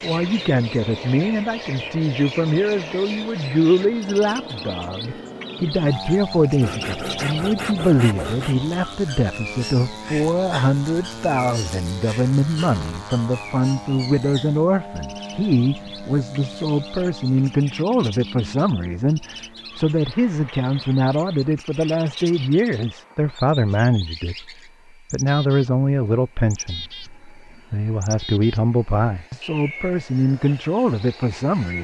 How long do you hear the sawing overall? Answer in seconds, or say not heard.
2 s.